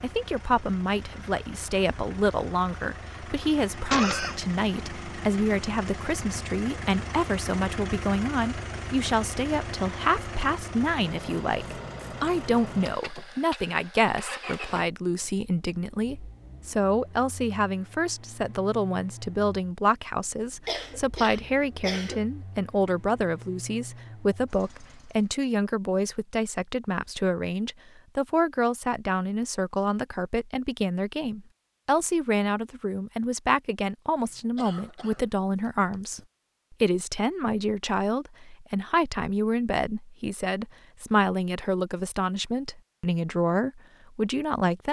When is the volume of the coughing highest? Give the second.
4 s.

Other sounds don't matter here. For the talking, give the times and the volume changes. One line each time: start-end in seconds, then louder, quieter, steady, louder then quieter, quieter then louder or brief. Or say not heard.
0.0-44.8 steady.